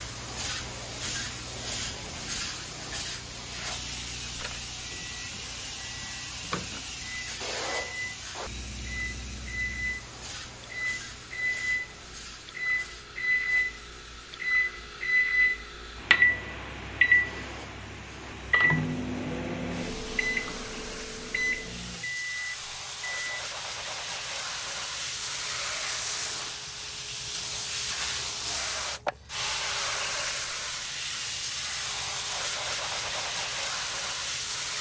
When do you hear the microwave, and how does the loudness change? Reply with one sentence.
You can hear the microwave from 4.3 to 23.4 s, getting louder then quieter.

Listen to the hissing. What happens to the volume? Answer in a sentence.
The loudness of the hissing goes down, then up.